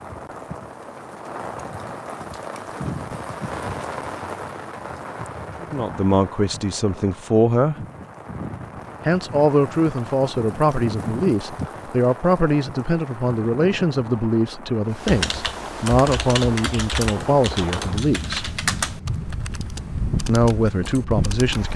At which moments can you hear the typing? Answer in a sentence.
You can hear the typing from 14.9 to 21.7 s.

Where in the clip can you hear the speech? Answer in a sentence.
The speech can be heard from 5.6 to 7.8 s, from 9.1 to 18.6 s and from 20.2 to 21.7 s.